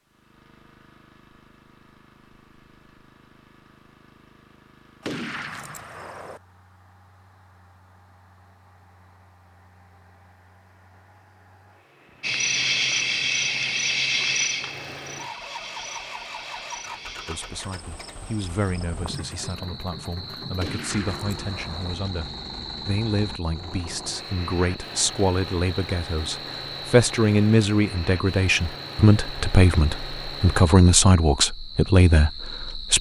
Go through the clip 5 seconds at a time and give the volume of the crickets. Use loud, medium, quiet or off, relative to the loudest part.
off, off, loud, quiet, quiet, quiet, quiet.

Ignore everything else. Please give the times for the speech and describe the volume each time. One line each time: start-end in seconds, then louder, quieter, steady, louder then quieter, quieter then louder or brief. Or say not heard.
17.2-32.9 louder.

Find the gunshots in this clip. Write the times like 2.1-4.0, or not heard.
5.0-6.4, 20.6-21.9.